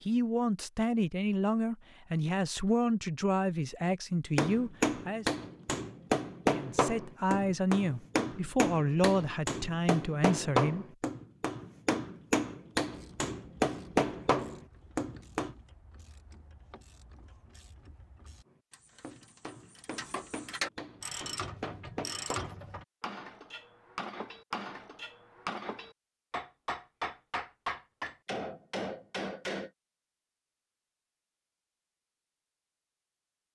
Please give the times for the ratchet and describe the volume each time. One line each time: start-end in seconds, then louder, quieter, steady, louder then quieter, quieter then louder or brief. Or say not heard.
12.9-22.9 louder.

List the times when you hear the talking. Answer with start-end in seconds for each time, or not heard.
0.0-5.3, 6.5-10.8.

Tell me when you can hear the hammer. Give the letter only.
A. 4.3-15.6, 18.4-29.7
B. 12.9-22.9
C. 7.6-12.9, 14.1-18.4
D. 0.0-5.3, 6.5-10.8
A.